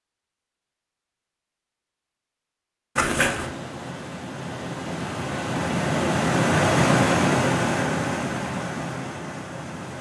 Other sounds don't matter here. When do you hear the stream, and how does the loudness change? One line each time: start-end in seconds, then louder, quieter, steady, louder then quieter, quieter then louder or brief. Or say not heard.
3.2-9.9 louder then quieter.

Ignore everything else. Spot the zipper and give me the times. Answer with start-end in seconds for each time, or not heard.
3.0-3.5.